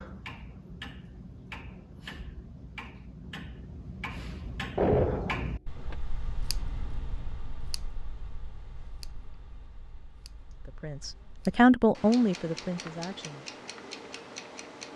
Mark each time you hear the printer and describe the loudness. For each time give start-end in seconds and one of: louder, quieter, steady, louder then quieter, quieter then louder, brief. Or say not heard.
not heard.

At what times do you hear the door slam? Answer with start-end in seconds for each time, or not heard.
4.8-6.0.